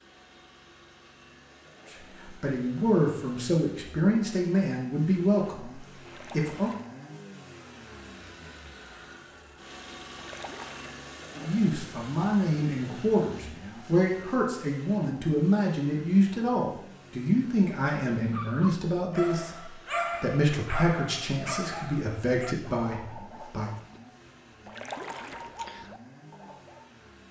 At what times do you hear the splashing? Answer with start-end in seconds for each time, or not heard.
6.0-6.9, 10.2-11.1, 24.6-25.5.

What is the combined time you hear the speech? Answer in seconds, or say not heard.
17 s.